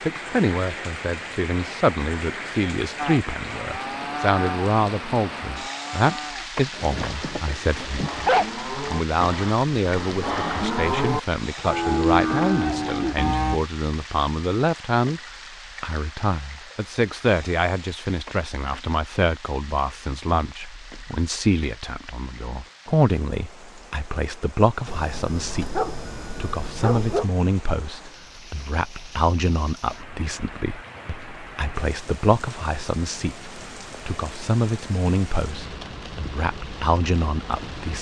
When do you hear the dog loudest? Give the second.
8 s.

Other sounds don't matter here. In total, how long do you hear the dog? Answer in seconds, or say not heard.
4 s.